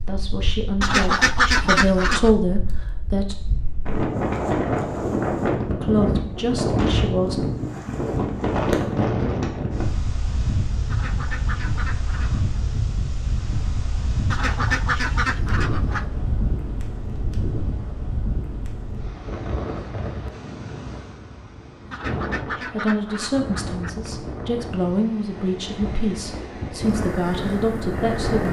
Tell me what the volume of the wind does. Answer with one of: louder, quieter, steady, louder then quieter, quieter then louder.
quieter.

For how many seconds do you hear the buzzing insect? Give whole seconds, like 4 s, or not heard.
not heard.